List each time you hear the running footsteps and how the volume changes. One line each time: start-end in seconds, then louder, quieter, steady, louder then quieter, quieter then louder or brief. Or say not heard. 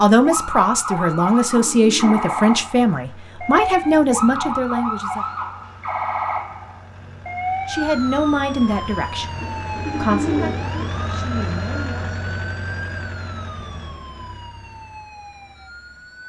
not heard.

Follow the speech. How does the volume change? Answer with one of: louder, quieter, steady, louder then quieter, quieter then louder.
quieter.